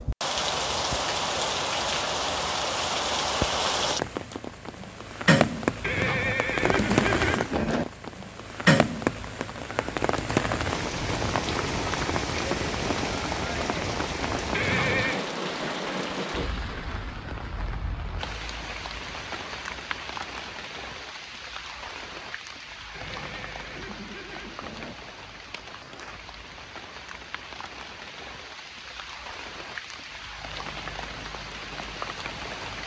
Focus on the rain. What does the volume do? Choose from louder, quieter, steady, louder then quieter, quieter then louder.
quieter.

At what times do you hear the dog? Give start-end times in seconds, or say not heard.
not heard.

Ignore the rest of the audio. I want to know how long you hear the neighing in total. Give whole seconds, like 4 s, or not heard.
5 s.